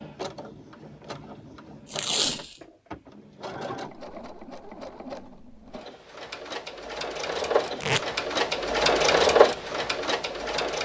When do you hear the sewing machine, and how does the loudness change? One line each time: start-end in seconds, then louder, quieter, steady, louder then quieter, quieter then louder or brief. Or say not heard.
0.0-10.8 louder.